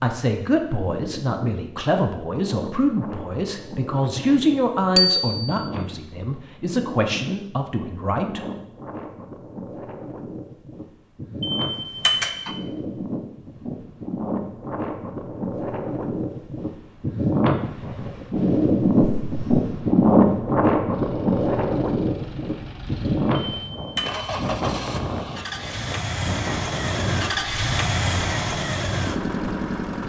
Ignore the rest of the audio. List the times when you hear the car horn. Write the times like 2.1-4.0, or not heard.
not heard.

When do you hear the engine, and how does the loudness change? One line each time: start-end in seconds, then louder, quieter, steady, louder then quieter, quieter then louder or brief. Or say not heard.
20.9-30.0 louder.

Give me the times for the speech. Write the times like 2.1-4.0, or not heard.
0.0-8.4.